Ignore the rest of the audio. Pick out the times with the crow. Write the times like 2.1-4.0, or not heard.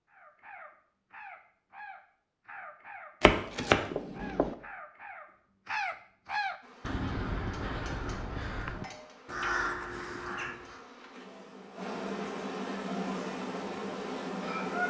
0.1-10.8.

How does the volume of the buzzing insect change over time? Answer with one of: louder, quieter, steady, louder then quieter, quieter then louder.
louder.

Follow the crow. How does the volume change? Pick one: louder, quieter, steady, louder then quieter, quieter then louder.
louder.